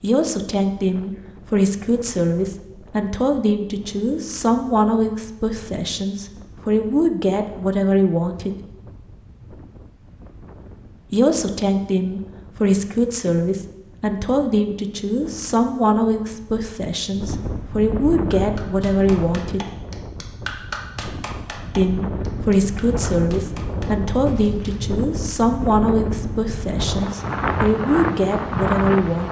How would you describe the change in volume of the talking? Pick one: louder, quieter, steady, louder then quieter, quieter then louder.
steady.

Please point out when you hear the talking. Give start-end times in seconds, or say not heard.
0.0-8.6, 11.1-19.6, 21.8-29.2.